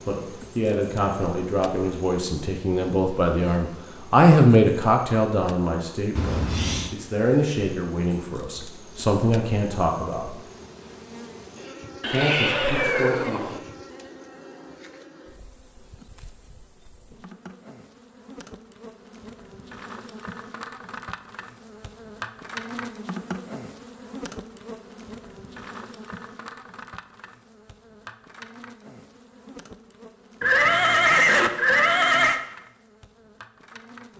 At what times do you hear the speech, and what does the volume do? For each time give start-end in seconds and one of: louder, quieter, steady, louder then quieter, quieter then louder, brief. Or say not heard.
0.1-10.3 louder then quieter
12.1-13.6 brief.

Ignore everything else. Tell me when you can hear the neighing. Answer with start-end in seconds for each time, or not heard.
6.2-7.0, 12.0-13.6, 30.4-32.4.